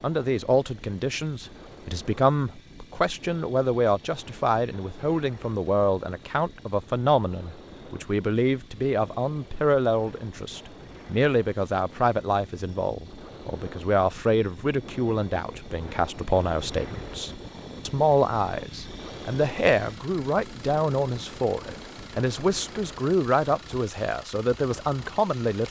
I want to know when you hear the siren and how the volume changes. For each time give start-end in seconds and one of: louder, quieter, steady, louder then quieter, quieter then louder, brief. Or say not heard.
not heard.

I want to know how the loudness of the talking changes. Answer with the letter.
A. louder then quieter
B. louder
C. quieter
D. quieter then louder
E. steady
E.